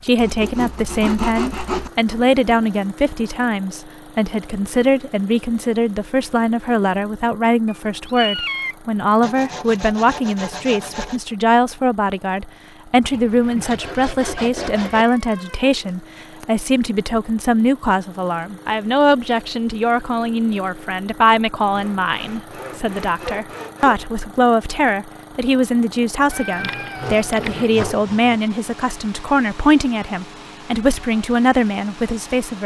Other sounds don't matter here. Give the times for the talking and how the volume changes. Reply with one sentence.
You can hear the talking from 0.0 to 32.6 s, at a steady volume.